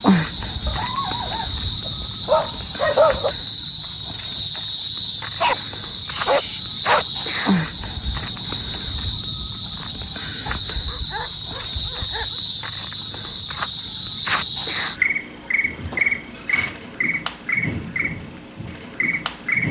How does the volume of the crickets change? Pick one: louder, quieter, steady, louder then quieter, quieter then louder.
steady.